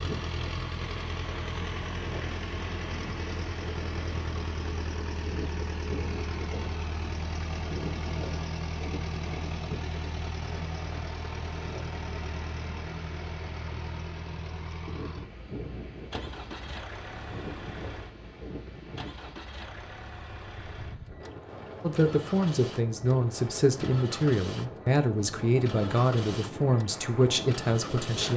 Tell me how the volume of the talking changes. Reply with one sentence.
The loudness of the talking stays about the same.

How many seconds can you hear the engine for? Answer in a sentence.
You can hear the engine for 28 seconds altogether.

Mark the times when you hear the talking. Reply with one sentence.
You can hear the talking from 21.8 to 28.3 s.